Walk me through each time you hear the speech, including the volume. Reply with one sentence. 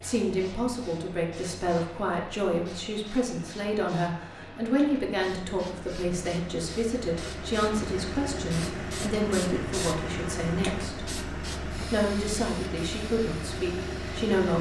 You can hear the speech from 0.0 to 11.1 s, at a steady volume; and briefly from 11.8 to 14.5 s.